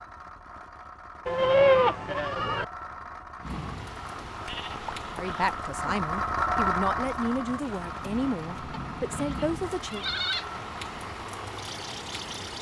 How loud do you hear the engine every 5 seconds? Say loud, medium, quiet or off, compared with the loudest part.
medium, loud, medium.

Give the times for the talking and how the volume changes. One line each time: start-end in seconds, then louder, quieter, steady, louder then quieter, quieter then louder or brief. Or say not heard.
5.1-10.1 steady.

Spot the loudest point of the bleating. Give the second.
2 s.